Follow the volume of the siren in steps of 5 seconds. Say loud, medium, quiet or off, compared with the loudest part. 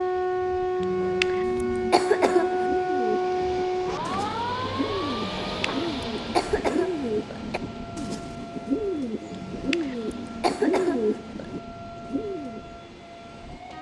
loud, quiet, quiet.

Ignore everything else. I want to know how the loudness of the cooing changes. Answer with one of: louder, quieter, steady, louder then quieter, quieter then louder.
louder.